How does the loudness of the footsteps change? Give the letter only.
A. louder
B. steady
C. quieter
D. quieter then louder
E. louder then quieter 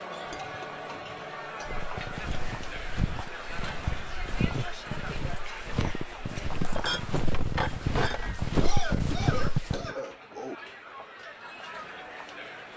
A.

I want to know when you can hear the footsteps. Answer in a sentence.
You can hear the footsteps from 1.6 to 9.9 s.